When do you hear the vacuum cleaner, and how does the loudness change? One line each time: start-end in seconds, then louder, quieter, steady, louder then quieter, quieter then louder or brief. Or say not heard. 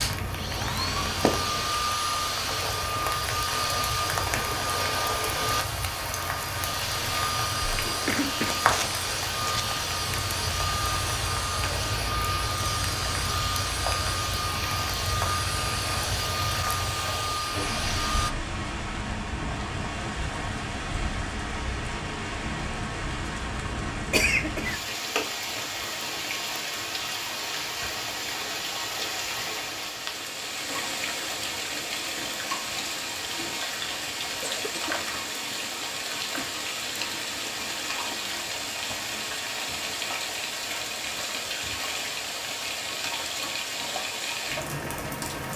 0.0-18.3 steady.